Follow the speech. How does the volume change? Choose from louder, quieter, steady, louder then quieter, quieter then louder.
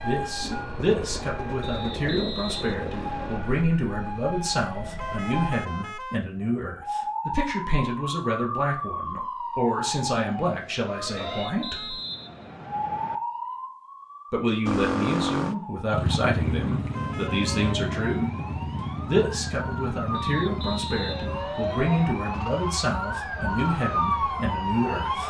steady.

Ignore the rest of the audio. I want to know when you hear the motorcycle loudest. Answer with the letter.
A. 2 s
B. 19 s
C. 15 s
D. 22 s
C.